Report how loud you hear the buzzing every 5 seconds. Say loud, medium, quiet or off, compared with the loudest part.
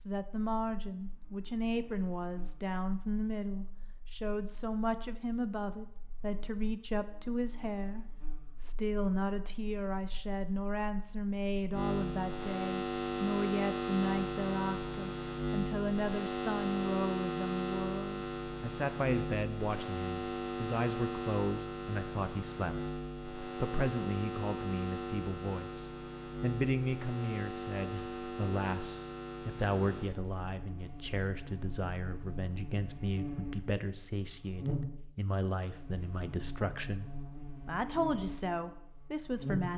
quiet, quiet, loud, loud, loud, medium, medium, medium.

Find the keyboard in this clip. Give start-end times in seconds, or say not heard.
not heard.